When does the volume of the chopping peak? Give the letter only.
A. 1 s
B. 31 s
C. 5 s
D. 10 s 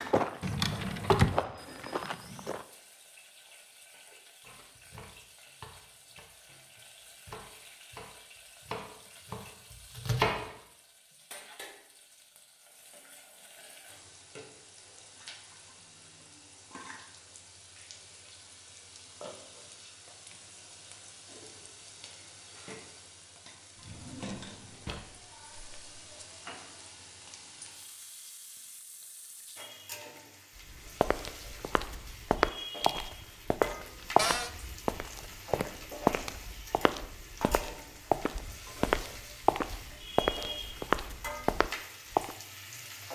D.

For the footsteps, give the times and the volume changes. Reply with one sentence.
You can hear the footsteps briefly from 0.0 to 2.6 s; and from 30.7 to 42.4 s, at a steady volume.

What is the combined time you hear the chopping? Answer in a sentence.
You can hear the chopping for 6 seconds altogether.